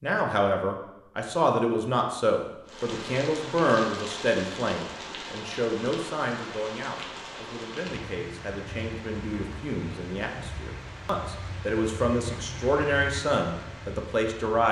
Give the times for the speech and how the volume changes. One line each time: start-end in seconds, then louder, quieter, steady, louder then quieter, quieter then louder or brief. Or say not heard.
0.0-14.6 quieter then louder.